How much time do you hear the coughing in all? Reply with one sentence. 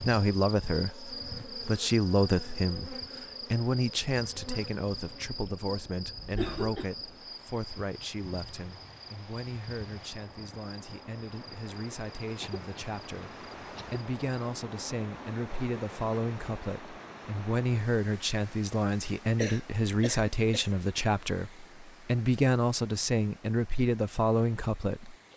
You can hear the coughing for 4 seconds altogether.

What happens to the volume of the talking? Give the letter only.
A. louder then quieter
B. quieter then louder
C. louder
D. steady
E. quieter
B.